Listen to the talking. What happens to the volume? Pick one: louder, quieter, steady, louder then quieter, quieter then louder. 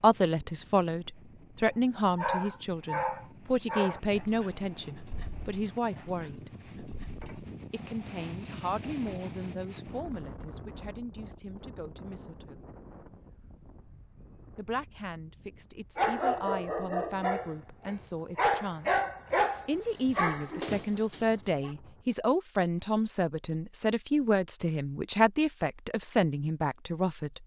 quieter then louder.